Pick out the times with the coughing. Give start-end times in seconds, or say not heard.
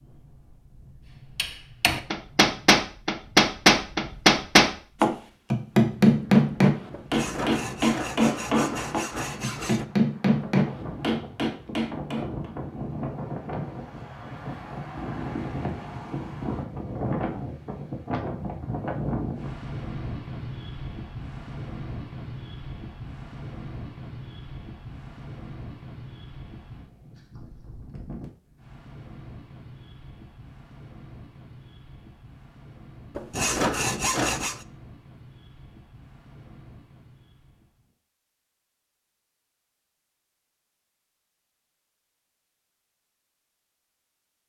not heard.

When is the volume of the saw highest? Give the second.
34 s.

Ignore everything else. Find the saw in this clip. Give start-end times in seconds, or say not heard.
6.9-9.8, 33.1-34.6.